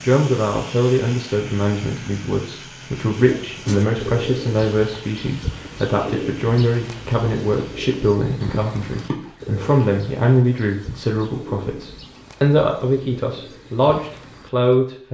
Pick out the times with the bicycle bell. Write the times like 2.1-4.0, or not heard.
not heard.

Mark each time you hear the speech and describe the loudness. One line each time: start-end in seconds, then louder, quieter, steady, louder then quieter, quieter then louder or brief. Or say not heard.
0.0-15.0 steady.